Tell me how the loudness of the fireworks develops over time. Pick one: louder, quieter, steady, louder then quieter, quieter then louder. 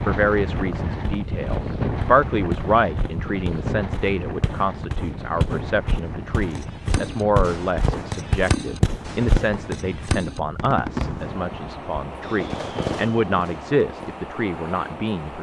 steady.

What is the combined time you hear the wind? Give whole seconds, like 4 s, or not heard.
15 s.